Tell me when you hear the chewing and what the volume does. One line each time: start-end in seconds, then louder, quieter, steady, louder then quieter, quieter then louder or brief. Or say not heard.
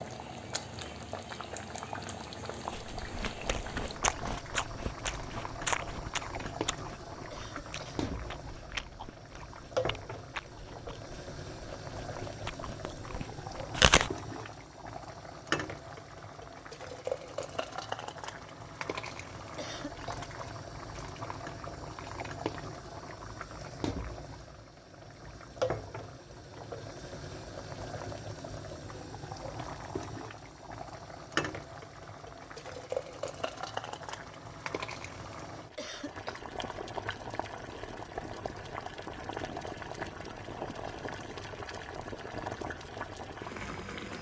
2.7-14.1 quieter.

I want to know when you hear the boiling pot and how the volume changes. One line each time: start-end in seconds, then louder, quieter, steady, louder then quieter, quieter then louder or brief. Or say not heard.
0.0-44.1 steady.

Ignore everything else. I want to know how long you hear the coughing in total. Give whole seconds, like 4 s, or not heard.
2 s.